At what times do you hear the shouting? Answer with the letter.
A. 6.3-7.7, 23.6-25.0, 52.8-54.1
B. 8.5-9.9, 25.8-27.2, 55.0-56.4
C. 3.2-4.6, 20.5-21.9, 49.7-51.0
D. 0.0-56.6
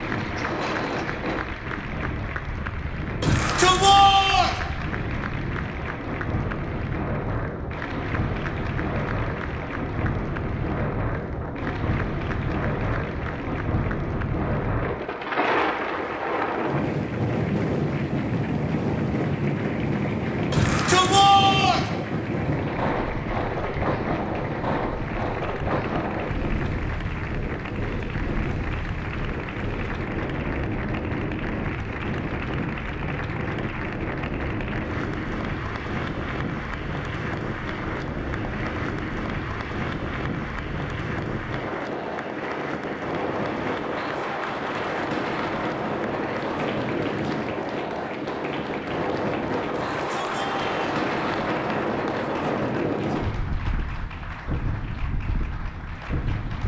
C.